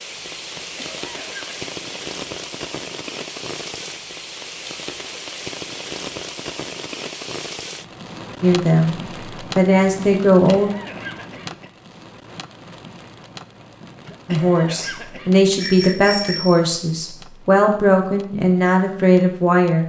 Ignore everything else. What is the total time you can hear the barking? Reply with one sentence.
You can't hear the barking here.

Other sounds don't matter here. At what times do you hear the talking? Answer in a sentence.
You can hear the talking from 8.4 to 10.7 s and from 14.2 to 19.8 s.